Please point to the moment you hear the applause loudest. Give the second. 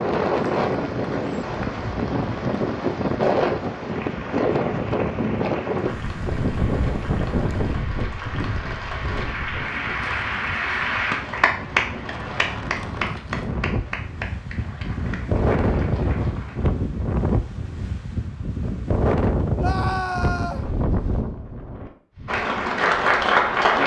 23 s.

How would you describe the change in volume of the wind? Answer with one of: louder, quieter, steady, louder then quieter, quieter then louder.
quieter then louder.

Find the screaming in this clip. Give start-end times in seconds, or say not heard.
19.6-20.6.